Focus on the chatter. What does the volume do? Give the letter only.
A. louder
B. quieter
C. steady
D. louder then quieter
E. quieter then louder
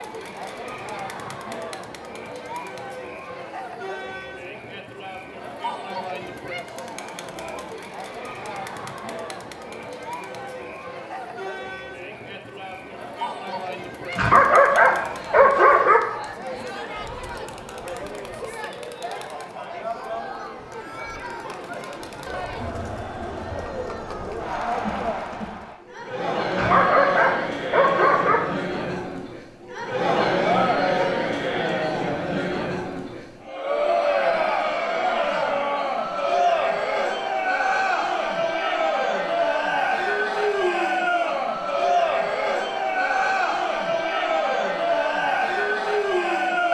A.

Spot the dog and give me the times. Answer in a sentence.
The dog can be heard from 14.1 to 16.0 s and from 26.5 to 28.4 s.